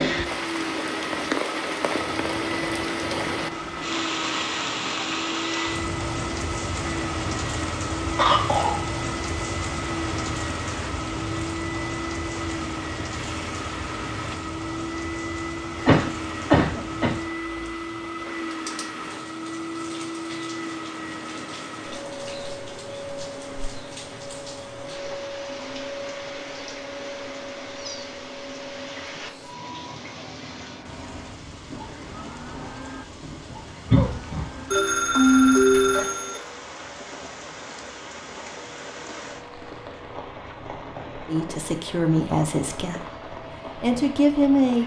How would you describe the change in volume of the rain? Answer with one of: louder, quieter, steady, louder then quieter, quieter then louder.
quieter.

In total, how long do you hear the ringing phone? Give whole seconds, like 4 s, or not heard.
2 s.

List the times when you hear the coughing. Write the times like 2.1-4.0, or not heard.
8.2-8.8, 15.8-17.1, 33.9-34.5.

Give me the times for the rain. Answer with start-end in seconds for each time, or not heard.
0.0-44.8.